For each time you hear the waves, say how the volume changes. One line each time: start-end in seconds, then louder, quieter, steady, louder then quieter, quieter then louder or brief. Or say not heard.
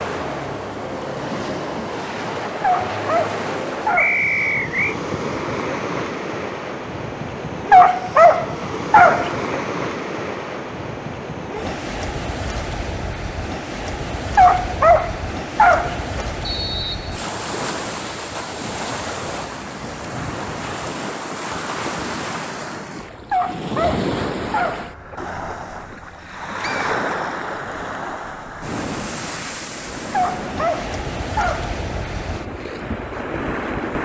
0.0-33.9 steady.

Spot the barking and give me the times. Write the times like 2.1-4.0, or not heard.
2.6-4.3, 7.7-9.6, 14.3-16.0, 23.3-25.1, 30.1-31.8.